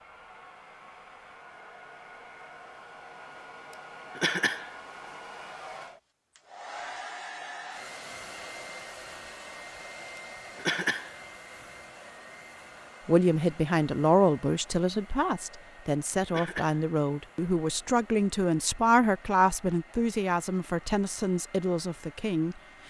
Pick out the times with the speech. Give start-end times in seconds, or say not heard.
13.1-22.6.